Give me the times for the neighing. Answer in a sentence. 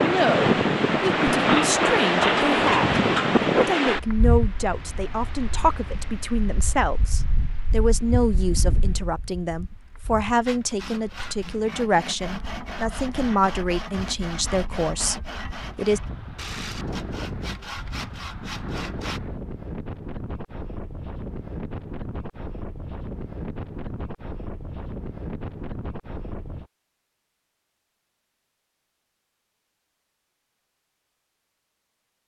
You can't hear the neighing here.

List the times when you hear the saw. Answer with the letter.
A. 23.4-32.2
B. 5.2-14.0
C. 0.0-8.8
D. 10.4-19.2
D.